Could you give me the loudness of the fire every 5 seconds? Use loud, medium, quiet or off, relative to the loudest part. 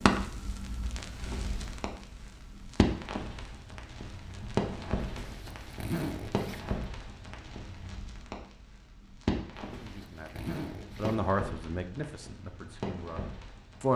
loud, medium, medium.